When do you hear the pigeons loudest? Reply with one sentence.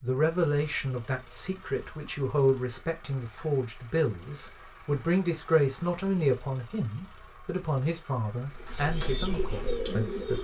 The volume of the pigeons peaks at 10 seconds.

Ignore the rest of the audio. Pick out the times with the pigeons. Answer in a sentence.
You can hear the pigeons from 8.5 to 10.3 s.